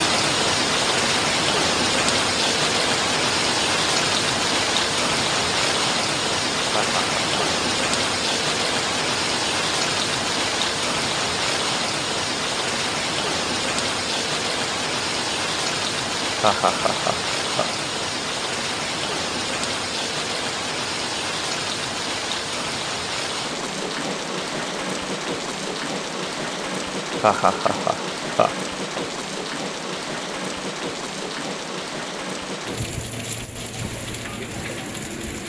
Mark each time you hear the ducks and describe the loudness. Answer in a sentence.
The ducks can't be heard in this clip.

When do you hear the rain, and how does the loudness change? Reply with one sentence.
You can hear the rain from 0.0 to 35.4 s, getting quieter.